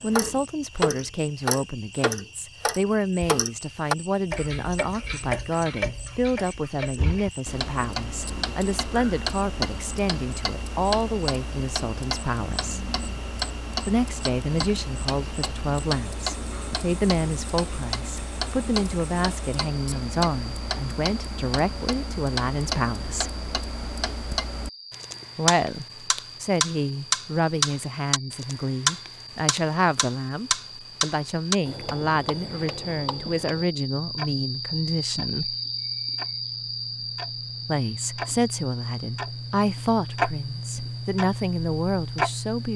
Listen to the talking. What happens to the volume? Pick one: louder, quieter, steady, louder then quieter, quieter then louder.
steady.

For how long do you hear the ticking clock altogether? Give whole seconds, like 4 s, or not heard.
43 s.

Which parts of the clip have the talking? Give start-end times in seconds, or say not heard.
0.0-12.8, 13.8-23.4, 25.4-35.5, 37.6-42.7.